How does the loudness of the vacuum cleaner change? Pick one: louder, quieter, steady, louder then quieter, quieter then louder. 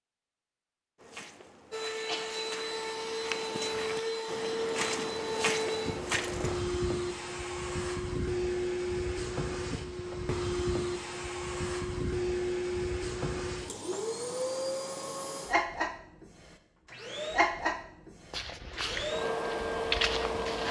steady.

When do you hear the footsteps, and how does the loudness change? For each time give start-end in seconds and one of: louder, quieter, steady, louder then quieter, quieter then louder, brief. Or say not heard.
0.9-6.6 louder
18.3-20.6 brief.